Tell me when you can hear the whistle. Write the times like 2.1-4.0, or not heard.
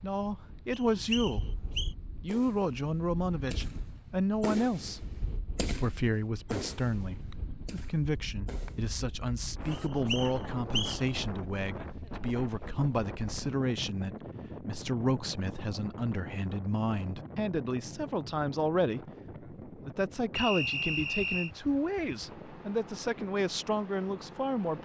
0.7-1.9, 9.7-11.0, 20.4-21.5.